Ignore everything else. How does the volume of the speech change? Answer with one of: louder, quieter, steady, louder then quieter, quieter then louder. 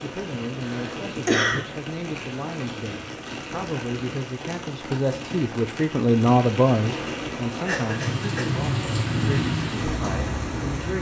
louder then quieter.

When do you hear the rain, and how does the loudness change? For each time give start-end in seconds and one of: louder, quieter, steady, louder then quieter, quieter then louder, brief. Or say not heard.
0.0-10.9 louder.